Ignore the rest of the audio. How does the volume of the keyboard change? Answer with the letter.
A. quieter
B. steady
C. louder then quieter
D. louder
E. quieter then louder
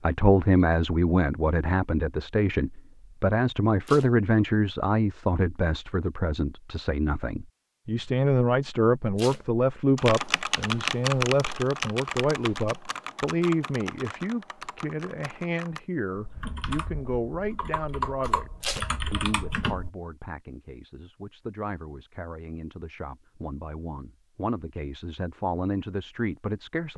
E.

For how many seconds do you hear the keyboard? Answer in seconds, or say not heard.
10 s.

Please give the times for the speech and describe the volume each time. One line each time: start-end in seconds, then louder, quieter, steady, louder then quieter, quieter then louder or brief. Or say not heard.
0.0-26.9 quieter.